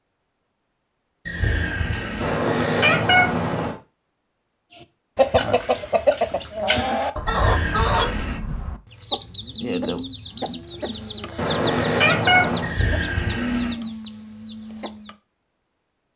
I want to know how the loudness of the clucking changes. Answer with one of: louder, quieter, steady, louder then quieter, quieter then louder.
quieter.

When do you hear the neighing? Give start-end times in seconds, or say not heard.
1.2-2.4, 7.2-8.4, 12.6-13.8.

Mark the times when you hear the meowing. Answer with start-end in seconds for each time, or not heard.
2.2-3.8, 11.3-12.8.